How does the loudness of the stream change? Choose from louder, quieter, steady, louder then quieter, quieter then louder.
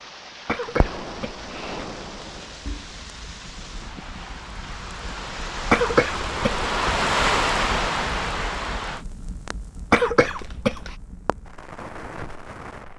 louder.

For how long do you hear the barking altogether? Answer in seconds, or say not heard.
not heard.